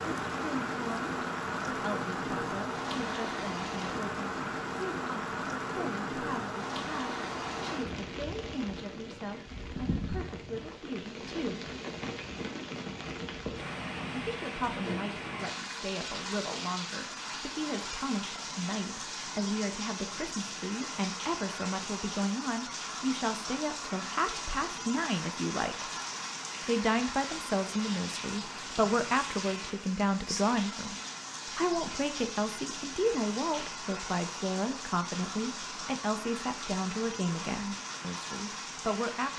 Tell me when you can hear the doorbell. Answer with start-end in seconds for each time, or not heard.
not heard.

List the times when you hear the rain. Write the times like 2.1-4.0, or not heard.
0.0-39.3.